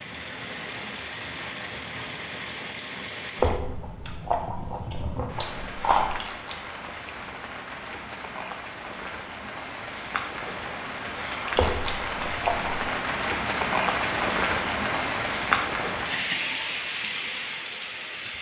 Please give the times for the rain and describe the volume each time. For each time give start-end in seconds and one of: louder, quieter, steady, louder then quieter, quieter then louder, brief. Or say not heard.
0.0-18.3 louder.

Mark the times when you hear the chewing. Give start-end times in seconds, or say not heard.
3.4-6.2, 11.6-12.8.